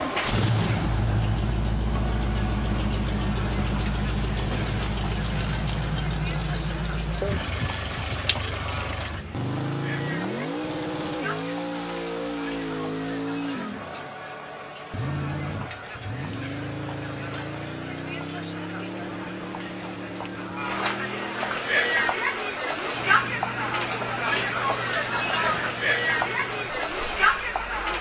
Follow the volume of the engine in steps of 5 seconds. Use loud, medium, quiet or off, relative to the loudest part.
loud, loud, loud, medium, medium, quiet.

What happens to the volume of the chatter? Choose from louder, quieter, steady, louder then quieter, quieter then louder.
louder.